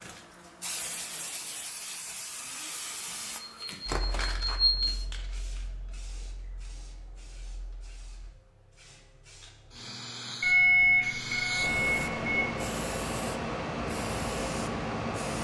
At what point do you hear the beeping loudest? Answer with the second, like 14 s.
11 s.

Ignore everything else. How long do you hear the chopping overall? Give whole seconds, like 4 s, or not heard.
not heard.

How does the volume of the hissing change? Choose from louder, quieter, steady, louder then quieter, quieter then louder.
quieter then louder.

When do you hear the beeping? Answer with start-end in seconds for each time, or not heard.
3.4-4.9, 10.4-12.4.